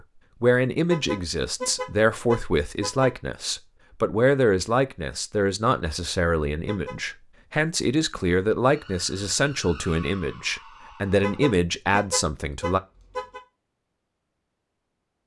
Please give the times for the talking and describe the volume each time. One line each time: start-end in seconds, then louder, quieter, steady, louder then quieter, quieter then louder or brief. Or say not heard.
0.4-12.8 steady.